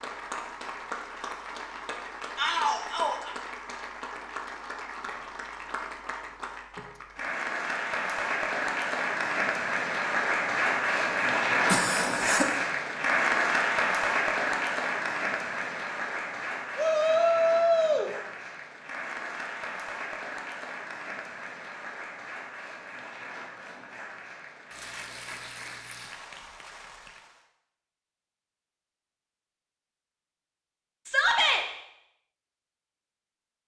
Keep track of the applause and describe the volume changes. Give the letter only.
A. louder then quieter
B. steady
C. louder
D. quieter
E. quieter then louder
A.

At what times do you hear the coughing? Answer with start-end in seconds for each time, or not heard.
11.7-12.5.